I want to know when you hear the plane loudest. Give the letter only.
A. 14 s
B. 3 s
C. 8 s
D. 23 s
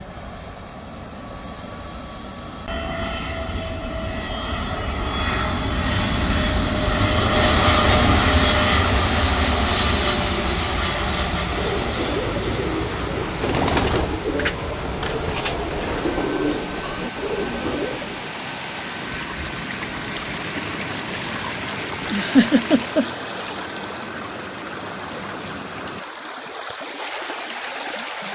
C.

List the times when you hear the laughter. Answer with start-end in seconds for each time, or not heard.
22.1-23.1.